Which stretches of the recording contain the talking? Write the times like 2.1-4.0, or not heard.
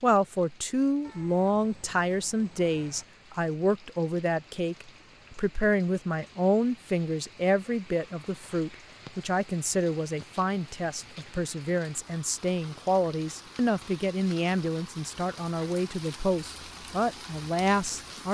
0.0-18.2.